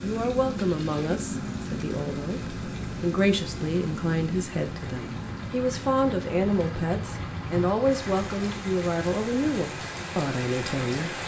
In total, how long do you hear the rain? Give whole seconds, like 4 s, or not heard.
11 s.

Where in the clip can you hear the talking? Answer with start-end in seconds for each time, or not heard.
0.0-11.2.